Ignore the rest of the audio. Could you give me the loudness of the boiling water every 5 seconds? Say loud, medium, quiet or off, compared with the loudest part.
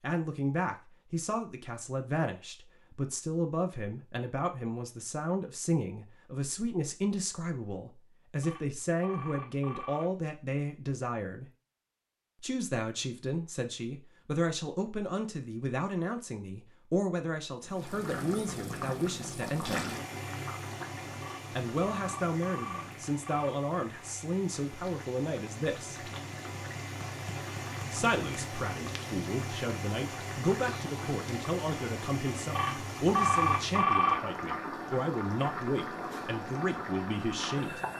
off, off, off, loud, medium, loud, loud, loud.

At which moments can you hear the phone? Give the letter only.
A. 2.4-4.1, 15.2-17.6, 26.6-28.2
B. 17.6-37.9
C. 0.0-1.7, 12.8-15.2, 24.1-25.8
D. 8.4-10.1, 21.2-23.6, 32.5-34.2
D.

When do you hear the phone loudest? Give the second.
34 s.